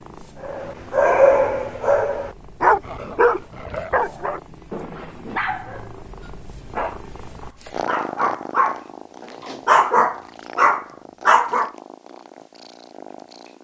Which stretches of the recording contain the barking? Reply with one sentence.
You can hear the barking from 0.4 to 8.8 s and from 9.7 to 11.7 s.